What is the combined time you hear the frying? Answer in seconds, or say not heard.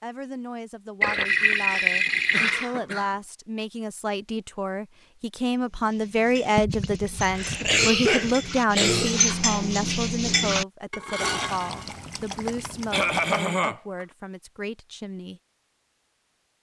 not heard.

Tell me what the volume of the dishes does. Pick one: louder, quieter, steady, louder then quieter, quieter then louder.
louder.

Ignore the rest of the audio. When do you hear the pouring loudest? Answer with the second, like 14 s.
2 s.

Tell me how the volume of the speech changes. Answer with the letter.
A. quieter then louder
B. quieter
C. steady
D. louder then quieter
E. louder
D.